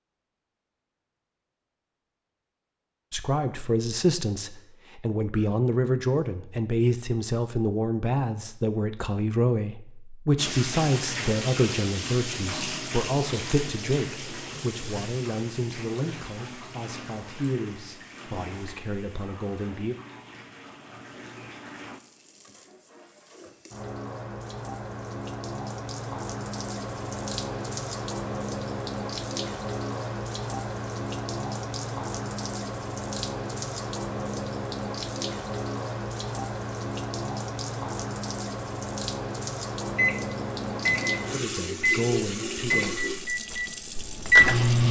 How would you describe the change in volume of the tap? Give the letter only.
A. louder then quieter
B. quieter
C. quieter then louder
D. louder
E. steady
C.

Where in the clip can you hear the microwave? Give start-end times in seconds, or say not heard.
39.9-44.8.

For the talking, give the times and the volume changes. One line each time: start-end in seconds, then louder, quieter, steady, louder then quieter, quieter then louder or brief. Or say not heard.
3.1-19.9 quieter
41.3-43.0 brief.